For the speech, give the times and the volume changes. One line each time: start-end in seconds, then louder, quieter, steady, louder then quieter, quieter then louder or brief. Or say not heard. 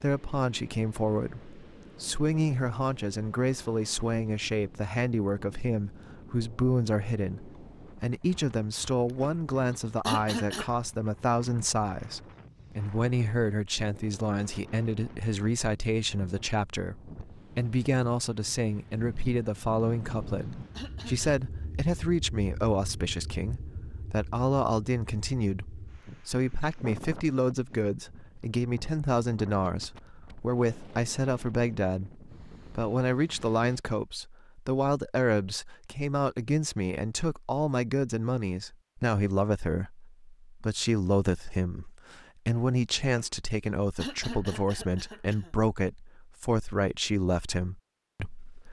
0.0-48.6 steady.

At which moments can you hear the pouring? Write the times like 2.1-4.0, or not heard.
not heard.